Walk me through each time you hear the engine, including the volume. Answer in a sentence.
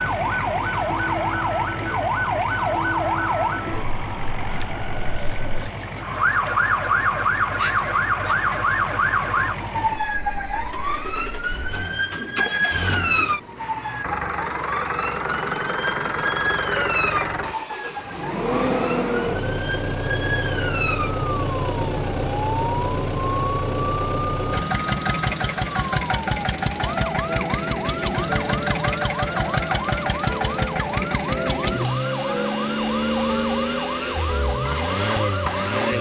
You can hear the engine from 0.0 to 35.9 s, getting louder.